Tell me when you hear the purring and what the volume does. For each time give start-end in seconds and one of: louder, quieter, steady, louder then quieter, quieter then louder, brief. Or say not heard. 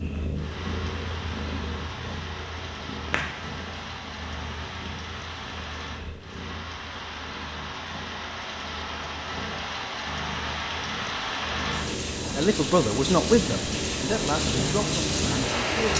0.0-15.9 quieter then louder.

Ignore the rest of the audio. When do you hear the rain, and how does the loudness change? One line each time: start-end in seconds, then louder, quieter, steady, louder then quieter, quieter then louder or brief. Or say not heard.
0.0-15.9 louder.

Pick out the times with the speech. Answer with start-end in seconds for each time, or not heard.
12.3-15.9.